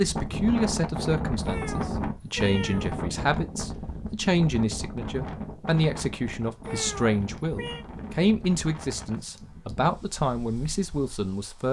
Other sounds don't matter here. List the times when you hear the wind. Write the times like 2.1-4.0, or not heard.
0.0-11.6.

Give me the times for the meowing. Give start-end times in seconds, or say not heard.
1.4-3.0, 6.7-7.8.